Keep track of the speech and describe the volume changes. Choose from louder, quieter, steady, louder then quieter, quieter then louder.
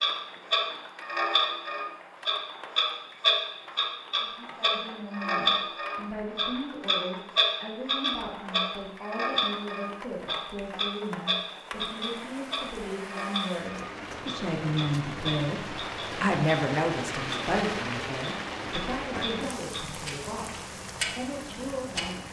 louder then quieter.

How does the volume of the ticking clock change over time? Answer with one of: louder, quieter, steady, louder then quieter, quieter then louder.
quieter.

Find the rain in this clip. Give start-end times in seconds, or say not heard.
0.0-22.2.